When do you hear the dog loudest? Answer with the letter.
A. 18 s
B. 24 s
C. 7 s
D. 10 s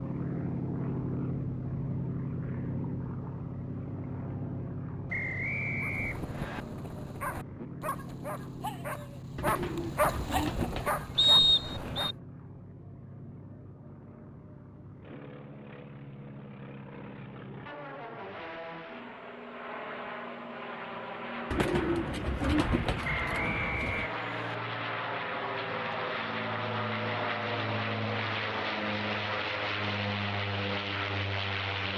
D.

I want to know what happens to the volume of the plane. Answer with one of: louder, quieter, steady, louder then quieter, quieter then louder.
quieter then louder.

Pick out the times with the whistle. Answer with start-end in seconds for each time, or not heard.
5.1-6.7, 11.2-12.2, 23.0-24.6.